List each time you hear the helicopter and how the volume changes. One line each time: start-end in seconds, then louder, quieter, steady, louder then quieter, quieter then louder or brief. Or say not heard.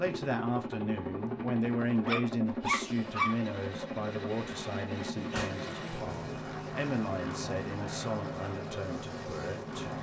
0.0-9.9 steady.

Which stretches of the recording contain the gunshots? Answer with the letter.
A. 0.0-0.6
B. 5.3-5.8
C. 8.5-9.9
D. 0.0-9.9
B.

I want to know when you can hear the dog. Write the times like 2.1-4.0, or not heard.
2.0-3.5.